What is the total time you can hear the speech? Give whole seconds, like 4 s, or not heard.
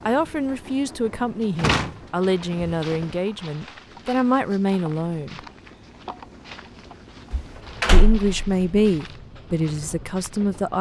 8 s.